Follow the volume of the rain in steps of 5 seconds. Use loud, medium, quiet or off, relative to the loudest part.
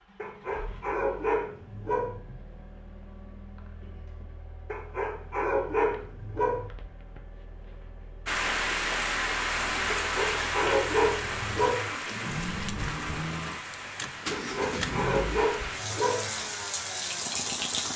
off, loud, medium, medium.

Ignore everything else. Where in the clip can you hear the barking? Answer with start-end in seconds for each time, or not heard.
0.2-2.2, 4.7-6.7, 9.9-11.9, 14.3-16.3.